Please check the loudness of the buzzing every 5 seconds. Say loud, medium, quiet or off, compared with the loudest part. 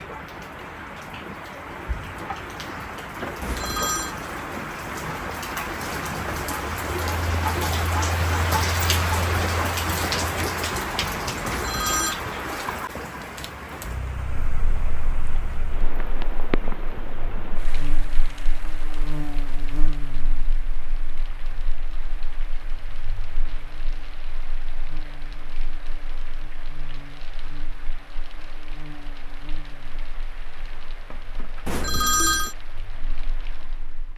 off, off, off, loud, medium, medium, quiet.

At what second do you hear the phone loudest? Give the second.
32 s.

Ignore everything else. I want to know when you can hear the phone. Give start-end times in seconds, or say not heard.
3.4-4.2, 11.4-12.2, 31.6-32.5.